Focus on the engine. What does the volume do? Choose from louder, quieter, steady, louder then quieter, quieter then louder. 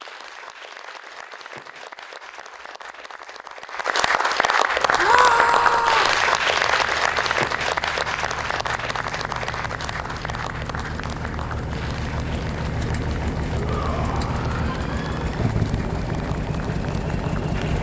louder.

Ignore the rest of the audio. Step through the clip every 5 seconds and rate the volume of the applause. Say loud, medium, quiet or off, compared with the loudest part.
medium, loud, quiet, quiet.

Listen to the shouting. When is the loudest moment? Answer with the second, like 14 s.
5 s.